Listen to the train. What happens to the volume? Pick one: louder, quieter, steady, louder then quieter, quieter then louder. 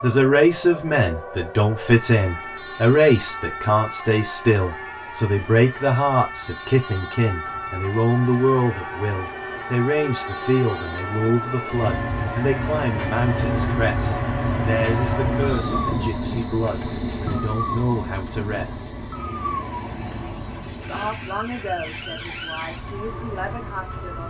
louder then quieter.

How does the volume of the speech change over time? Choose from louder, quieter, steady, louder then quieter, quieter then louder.
quieter.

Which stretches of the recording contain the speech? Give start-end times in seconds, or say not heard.
0.0-18.9, 20.9-24.2.